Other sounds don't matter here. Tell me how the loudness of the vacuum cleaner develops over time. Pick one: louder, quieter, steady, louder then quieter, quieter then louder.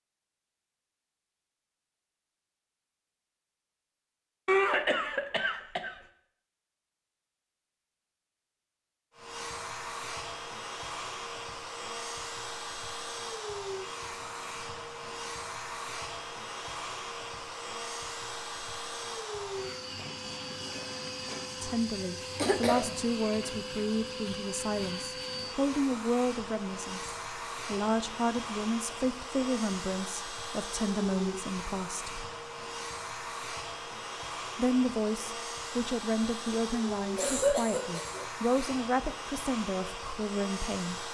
steady.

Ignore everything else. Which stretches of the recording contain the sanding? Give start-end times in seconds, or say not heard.
not heard.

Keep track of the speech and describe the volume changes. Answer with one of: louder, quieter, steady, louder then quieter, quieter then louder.
steady.